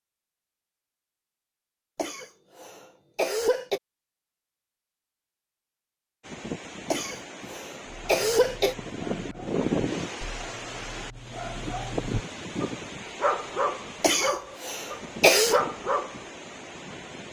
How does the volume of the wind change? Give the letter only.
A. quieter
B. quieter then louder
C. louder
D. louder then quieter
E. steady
D.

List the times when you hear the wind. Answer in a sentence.
You can hear the wind from 6.2 to 17.2 s.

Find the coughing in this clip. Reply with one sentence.
The coughing can be heard from 1.9 to 3.8 s, from 6.9 to 8.8 s and from 14.0 to 15.6 s.